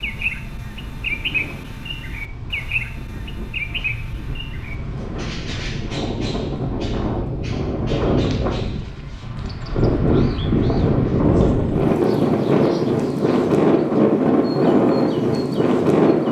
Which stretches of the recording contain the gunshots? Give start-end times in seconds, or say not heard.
not heard.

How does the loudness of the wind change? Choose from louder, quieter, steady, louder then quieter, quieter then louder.
louder.